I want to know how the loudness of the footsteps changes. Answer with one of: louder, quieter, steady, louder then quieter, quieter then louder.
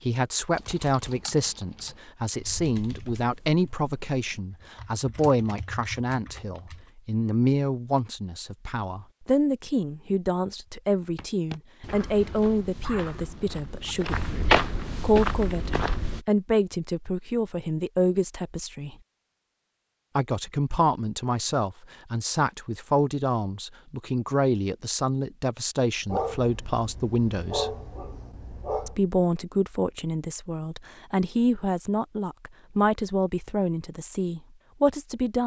louder then quieter.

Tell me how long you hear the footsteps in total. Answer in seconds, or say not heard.
5 s.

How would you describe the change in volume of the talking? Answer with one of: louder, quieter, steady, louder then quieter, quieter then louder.
steady.